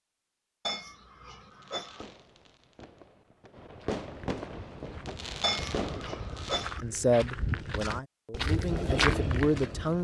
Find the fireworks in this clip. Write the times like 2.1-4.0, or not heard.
1.4-6.8.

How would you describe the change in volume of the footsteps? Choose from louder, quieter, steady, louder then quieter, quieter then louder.
louder.